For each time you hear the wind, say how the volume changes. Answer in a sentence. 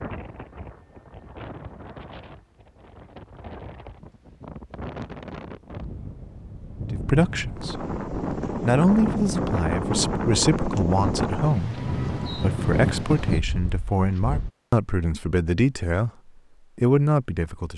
You can hear the wind from 0.0 to 14.5 s, getting louder.